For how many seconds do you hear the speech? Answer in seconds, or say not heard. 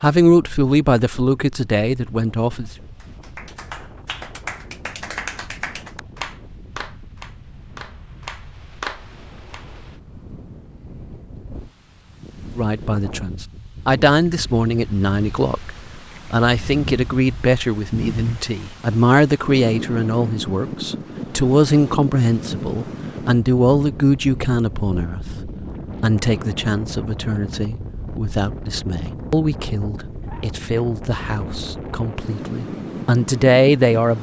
24 s.